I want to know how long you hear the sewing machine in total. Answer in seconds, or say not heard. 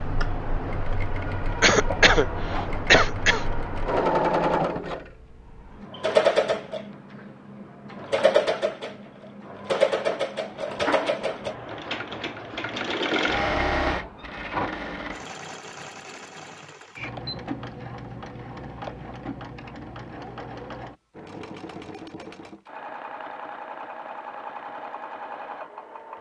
26 s.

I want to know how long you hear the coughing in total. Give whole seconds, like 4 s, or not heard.
2 s.